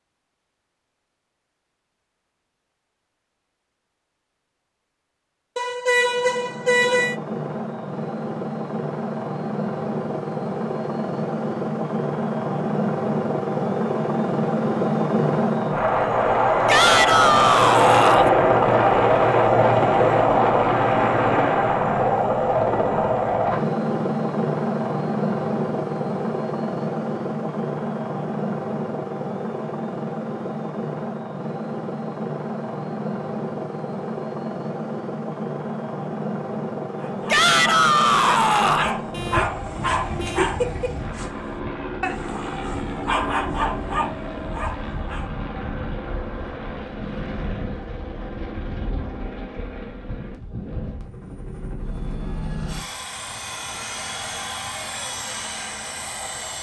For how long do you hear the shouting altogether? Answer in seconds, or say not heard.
3 s.